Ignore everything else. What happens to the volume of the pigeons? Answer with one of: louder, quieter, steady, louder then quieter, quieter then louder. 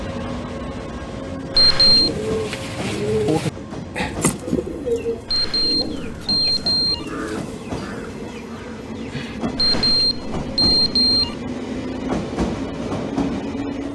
quieter.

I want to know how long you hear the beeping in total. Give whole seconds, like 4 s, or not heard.
4 s.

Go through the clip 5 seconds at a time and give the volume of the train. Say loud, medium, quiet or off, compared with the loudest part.
medium, medium, loud.